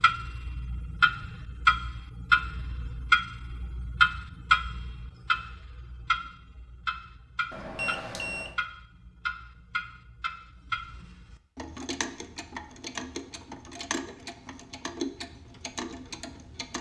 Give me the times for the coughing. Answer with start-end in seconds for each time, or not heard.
not heard.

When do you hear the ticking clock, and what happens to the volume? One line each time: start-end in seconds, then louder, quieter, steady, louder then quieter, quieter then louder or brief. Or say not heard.
0.0-16.7 quieter.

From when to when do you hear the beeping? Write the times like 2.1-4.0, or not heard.
7.5-8.6.